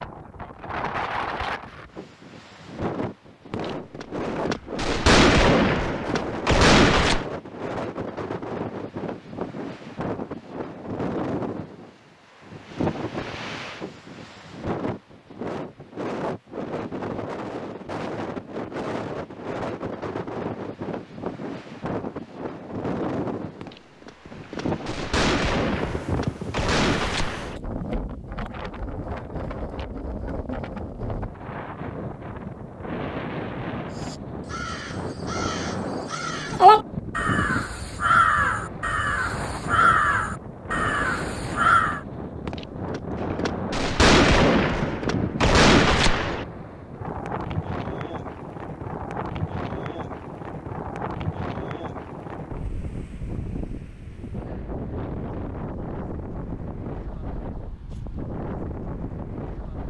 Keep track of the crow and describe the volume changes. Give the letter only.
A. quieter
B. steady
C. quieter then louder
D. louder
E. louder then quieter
E.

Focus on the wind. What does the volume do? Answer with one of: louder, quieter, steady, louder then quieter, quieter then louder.
steady.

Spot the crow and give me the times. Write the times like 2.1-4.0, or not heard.
34.1-42.0.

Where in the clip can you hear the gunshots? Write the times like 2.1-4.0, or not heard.
3.5-7.2, 23.6-27.6, 42.5-46.5.